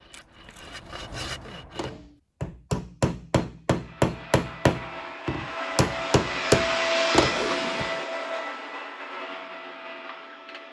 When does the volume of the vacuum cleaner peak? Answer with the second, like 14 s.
7 s.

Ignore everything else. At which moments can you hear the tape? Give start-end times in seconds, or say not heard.
0.1-0.8, 7.2-8.1.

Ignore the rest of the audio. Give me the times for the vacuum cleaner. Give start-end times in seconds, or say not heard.
3.7-10.6.